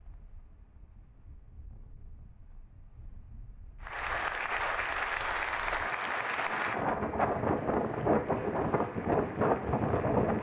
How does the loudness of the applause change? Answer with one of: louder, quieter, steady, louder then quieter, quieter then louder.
quieter.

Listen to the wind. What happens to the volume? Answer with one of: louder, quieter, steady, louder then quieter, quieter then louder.
louder.